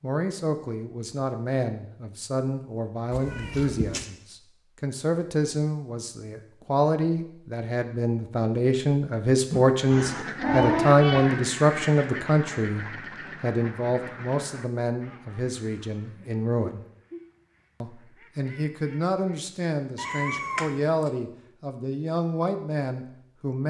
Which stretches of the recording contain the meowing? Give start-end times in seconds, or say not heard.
3.1-4.0, 9.5-11.3, 19.9-21.1.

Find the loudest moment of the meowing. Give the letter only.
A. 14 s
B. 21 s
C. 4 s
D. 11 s
D.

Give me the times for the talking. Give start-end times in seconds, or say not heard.
0.0-16.9, 17.8-23.6.